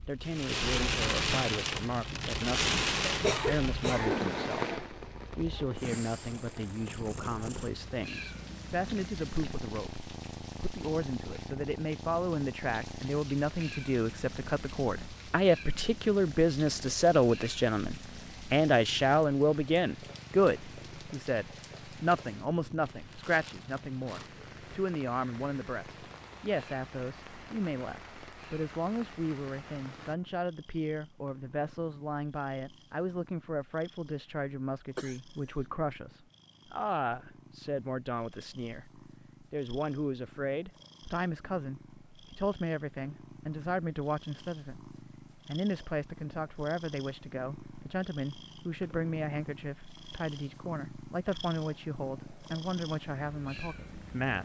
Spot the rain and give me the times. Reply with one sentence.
You can hear the rain from 0.0 to 30.1 s.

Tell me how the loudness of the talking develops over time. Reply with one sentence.
The loudness of the talking goes up, then down.